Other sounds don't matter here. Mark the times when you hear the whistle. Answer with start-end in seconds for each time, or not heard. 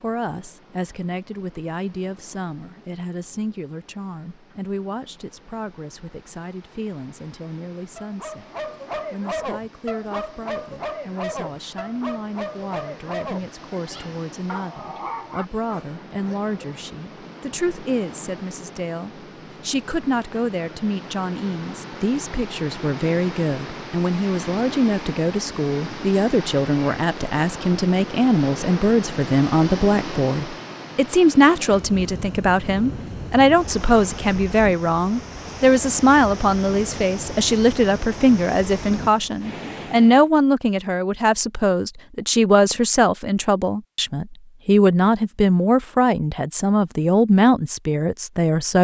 not heard.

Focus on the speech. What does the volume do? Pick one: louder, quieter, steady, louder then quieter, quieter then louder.
louder.